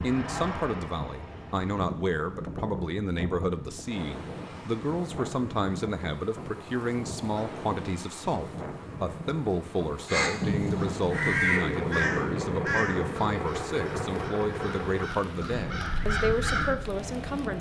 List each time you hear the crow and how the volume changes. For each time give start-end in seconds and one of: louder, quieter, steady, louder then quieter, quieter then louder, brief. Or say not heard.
10.1-16.7 quieter then louder.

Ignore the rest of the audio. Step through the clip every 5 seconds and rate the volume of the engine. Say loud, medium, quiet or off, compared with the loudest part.
medium, off, loud, medium.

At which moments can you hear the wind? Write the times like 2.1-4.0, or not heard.
0.0-17.5.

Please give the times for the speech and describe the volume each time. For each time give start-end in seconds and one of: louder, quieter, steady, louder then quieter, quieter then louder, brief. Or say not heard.
0.0-17.5 steady.